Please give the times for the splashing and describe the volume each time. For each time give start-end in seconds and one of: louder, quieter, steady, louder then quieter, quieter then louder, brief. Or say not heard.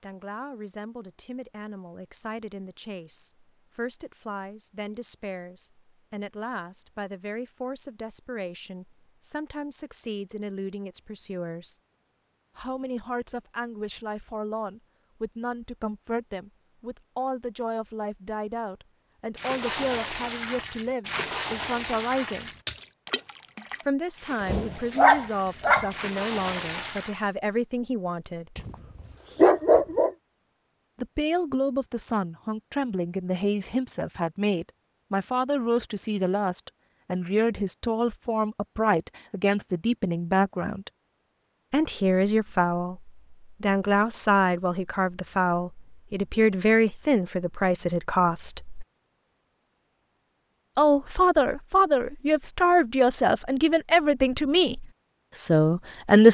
19.4-27.2 quieter then louder.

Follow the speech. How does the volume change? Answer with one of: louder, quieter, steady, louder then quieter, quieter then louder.
louder.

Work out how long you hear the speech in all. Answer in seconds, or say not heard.
49 s.